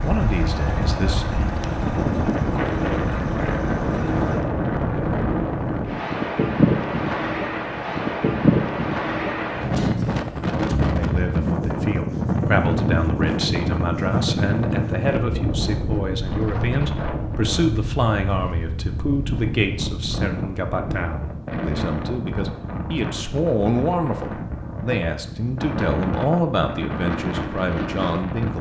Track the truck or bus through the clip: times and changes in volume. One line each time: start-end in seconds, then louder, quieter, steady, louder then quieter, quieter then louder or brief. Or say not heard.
0.0-4.5 steady.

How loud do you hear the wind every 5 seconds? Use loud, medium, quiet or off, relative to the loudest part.
loud, loud, loud, medium, medium, medium.